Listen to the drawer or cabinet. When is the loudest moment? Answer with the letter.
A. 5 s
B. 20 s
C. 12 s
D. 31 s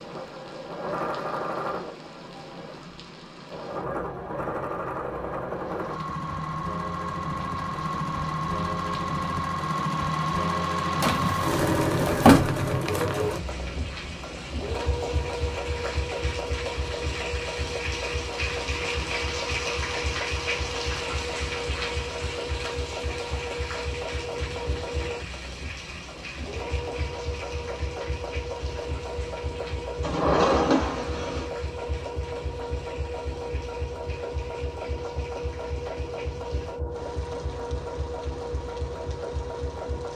C.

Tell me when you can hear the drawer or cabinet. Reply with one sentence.
You can hear the drawer or cabinet from 11.0 to 12.7 s and from 30.0 to 31.5 s.